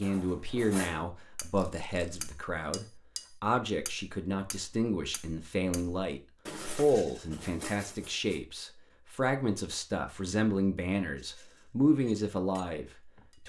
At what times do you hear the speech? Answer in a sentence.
The speech can be heard from 0.0 to 13.4 s.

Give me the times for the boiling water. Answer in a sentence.
The boiling water can't be heard in this clip.